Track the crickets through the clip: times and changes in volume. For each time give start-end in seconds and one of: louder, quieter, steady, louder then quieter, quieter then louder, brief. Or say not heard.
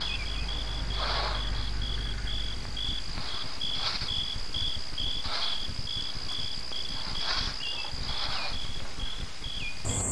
0.0-10.0 steady.